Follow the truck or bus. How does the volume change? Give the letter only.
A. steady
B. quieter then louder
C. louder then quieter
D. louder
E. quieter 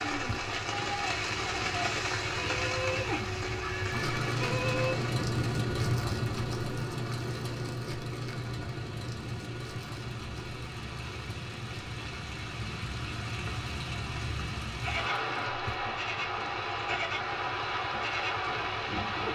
C.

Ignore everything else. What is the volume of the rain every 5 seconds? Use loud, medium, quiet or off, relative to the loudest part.
loud, medium, medium, loud.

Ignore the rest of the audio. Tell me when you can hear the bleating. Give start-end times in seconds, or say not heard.
0.0-5.0, 14.8-19.2.